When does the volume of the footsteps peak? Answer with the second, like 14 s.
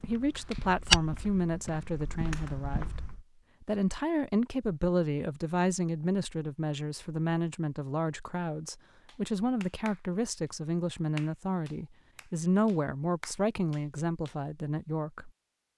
1 s.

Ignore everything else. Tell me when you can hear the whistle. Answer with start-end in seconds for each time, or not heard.
not heard.